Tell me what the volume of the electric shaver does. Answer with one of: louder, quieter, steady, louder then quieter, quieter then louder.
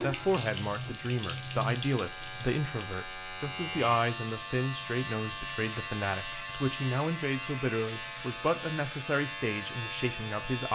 louder.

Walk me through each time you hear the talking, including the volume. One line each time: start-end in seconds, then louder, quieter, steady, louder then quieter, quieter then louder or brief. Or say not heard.
0.0-10.7 steady.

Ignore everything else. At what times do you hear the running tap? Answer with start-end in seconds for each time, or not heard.
0.0-3.1.